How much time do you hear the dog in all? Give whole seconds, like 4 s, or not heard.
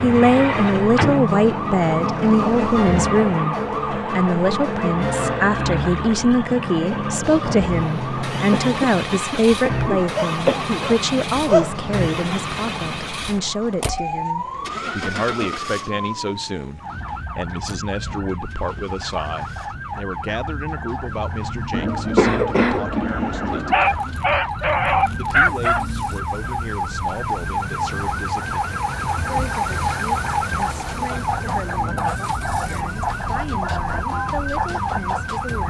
4 s.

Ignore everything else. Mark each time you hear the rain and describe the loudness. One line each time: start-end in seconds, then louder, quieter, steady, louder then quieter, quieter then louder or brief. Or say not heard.
not heard.